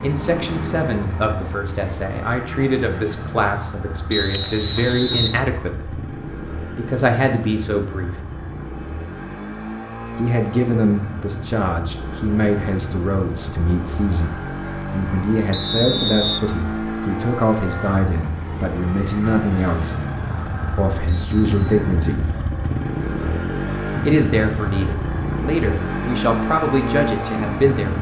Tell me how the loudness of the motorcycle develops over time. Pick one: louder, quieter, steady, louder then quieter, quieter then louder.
louder.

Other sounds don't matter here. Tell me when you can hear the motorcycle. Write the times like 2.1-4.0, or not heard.
0.0-27.9.